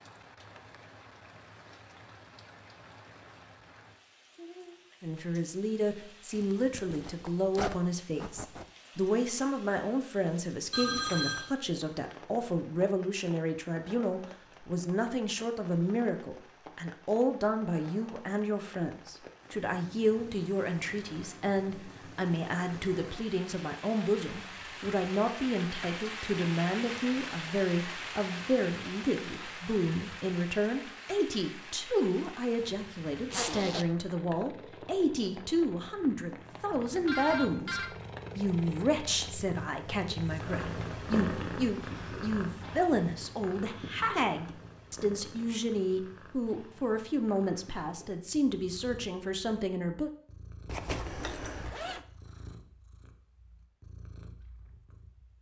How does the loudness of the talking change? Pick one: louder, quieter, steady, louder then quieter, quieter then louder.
steady.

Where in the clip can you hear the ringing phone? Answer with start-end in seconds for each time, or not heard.
10.7-11.4, 36.9-37.9.